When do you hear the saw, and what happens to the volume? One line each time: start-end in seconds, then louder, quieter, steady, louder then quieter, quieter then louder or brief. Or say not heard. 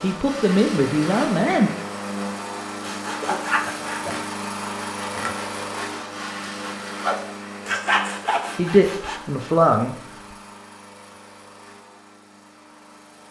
2.8-9.2 quieter then louder.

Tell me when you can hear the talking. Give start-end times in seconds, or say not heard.
0.0-1.7, 8.6-9.9.